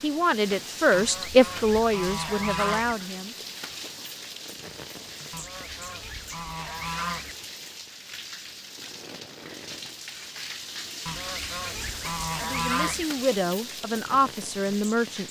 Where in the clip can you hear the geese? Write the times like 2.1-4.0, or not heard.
0.9-3.0, 5.3-7.3, 11.1-13.1.